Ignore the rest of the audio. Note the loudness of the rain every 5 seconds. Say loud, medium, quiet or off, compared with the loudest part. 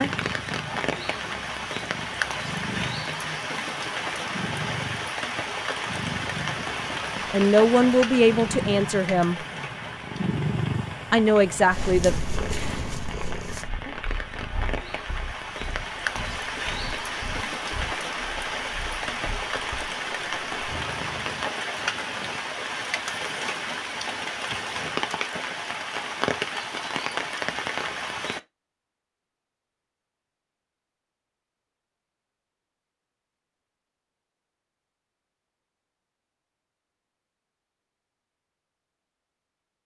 loud, loud, medium, loud, loud, loud, off, off.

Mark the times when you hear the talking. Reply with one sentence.
The talking can be heard from 7.3 to 9.3 s and from 11.1 to 12.2 s.